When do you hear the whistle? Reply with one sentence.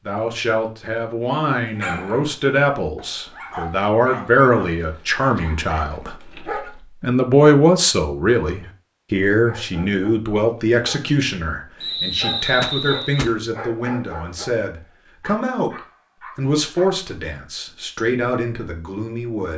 You can hear the whistle from 11.8 to 13.3 s.